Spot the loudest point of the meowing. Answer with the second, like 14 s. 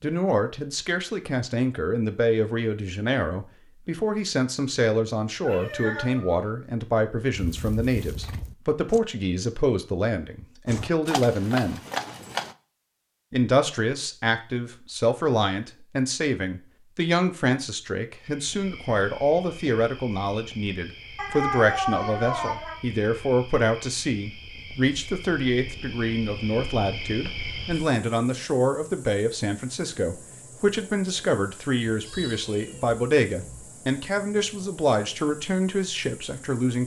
22 s.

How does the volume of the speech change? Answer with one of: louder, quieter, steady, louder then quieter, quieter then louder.
steady.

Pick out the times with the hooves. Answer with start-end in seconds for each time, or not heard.
7.3-9.0, 10.7-12.6.